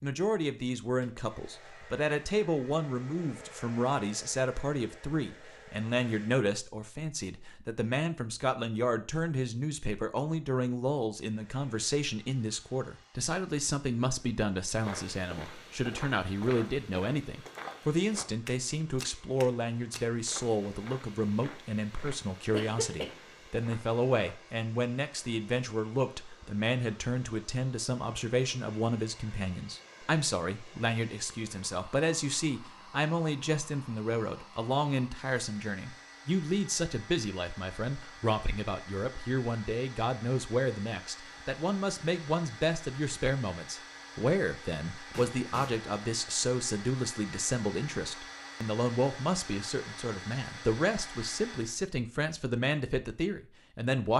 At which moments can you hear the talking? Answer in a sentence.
You can hear the talking from 0.0 to 54.1 s.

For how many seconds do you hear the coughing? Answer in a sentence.
The coughing can be heard for 2 seconds in total.